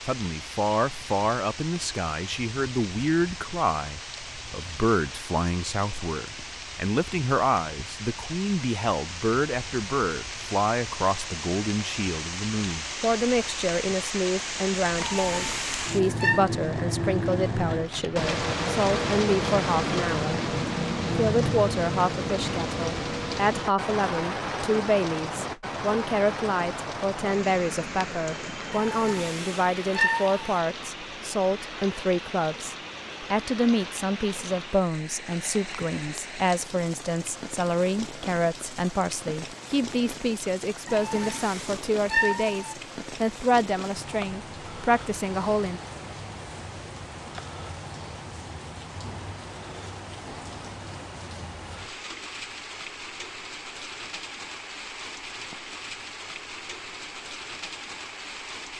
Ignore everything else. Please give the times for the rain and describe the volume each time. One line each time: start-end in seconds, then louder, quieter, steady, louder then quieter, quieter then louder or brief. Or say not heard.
0.0-58.7 louder then quieter.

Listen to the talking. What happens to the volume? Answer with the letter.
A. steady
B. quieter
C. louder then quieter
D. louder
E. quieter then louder
A.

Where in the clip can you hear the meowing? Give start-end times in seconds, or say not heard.
14.9-16.4, 28.7-30.6, 40.9-42.8.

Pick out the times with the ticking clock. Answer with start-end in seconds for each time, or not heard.
not heard.